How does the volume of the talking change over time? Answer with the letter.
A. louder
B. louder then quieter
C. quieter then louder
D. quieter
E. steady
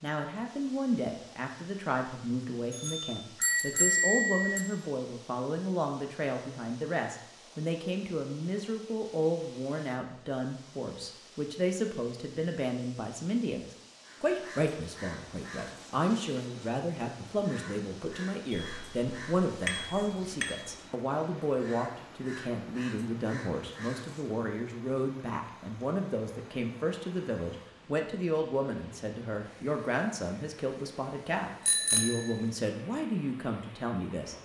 E.